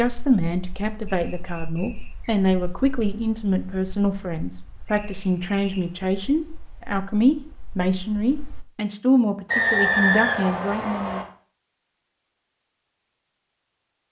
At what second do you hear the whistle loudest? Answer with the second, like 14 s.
10 s.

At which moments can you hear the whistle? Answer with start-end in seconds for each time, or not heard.
1.1-2.2, 4.8-5.8, 9.4-11.2.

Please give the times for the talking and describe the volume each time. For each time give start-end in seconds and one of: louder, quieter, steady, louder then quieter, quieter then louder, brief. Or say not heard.
0.0-11.2 steady.